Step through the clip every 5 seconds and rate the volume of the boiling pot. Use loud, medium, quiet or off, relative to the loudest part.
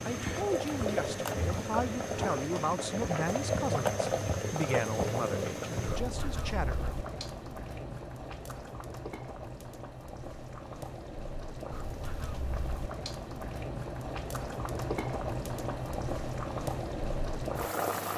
loud, medium, medium, loud.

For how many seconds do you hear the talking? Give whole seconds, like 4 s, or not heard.
7 s.